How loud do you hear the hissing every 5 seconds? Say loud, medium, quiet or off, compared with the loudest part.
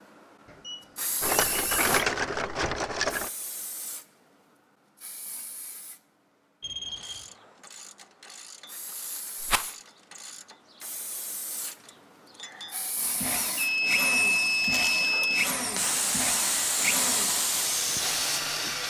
medium, quiet, quiet, loud.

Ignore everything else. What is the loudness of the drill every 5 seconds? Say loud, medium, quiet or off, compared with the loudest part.
off, off, loud, loud.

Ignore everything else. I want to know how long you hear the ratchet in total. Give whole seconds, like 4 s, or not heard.
6 s.